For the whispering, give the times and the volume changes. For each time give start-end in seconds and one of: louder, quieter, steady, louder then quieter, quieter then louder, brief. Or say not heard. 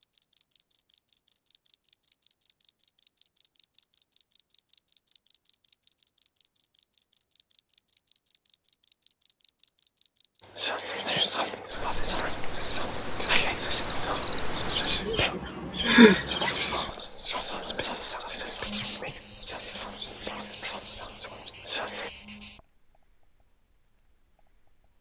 10.4-22.1 quieter.